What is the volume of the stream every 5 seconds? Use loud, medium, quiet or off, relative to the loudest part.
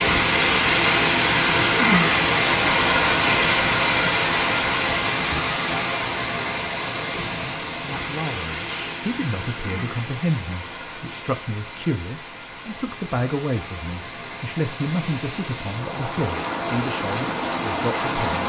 loud, medium, quiet, medium.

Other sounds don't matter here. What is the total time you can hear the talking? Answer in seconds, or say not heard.
11 s.